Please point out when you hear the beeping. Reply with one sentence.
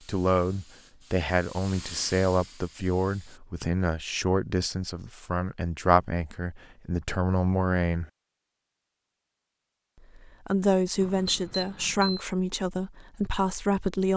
The beeping can be heard from 11.0 to 12.2 s.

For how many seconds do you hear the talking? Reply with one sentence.
The talking can be heard for 12 seconds in total.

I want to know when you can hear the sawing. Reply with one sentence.
You can't hear the sawing here.